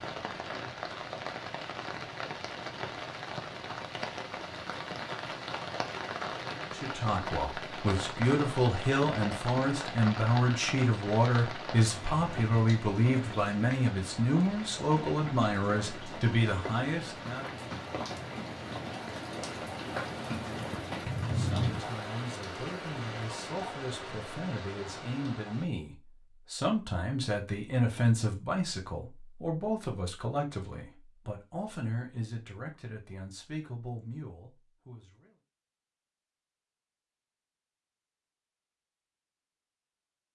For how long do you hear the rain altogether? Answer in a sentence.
The rain can be heard for 26 seconds in total.